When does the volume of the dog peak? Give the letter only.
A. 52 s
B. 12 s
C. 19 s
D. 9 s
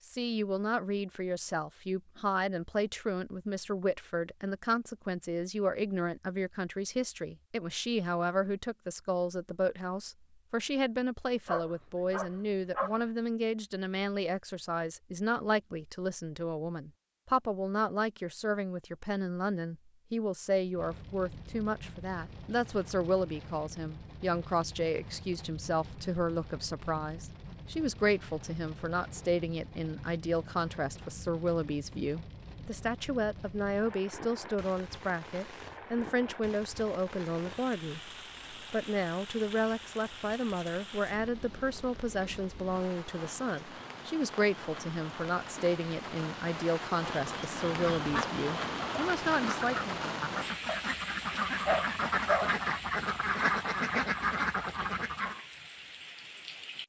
A.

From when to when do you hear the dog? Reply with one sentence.
You can hear the dog from 11.4 to 13.0 s and from 50.6 to 52.5 s.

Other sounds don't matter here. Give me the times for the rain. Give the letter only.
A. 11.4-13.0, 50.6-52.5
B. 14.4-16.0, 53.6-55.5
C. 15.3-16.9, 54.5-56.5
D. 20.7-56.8
D.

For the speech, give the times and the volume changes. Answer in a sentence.
The speech can be heard from 0.1 to 50.0 s, at a steady volume.